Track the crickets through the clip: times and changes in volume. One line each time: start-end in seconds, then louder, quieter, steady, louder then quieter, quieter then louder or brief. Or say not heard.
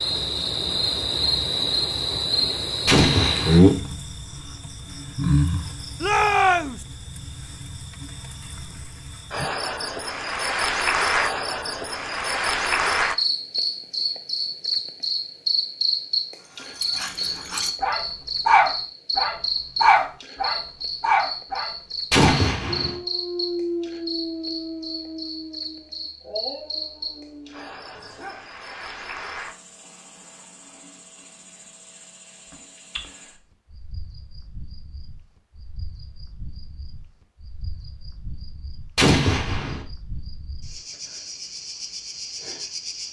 0.0-43.0 quieter.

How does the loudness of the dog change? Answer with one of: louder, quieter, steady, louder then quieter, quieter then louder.
quieter.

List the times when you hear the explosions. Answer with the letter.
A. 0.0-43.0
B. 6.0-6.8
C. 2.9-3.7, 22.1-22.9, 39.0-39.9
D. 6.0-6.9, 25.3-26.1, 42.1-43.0
C.